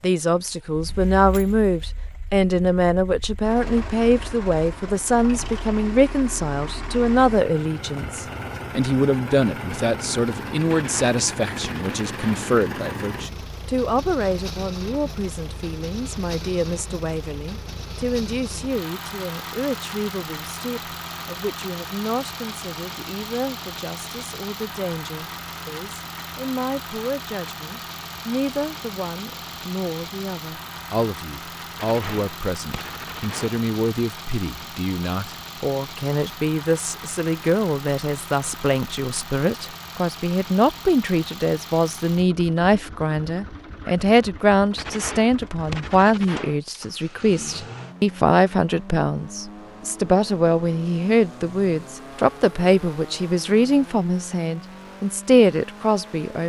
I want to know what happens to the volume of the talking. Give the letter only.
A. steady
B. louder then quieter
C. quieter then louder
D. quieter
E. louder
C.